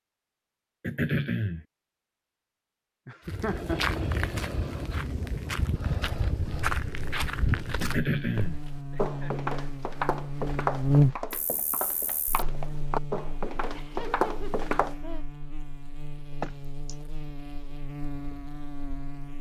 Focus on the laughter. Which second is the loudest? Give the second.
4 s.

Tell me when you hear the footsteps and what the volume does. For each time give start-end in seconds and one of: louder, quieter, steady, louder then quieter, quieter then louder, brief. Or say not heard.
3.2-14.9 steady.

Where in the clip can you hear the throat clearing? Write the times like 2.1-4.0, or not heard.
0.8-1.6, 7.8-8.6, 16.4-16.9.